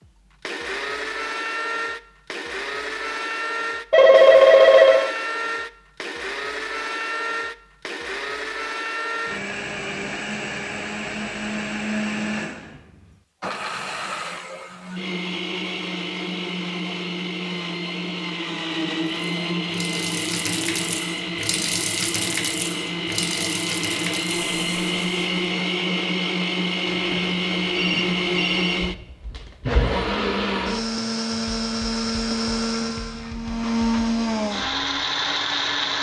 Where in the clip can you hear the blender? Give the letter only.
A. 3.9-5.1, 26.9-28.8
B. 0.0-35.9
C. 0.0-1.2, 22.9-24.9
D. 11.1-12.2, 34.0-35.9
B.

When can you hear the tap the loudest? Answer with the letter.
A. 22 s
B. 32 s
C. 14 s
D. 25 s
A.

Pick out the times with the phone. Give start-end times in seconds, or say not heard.
3.9-5.1, 26.9-28.8.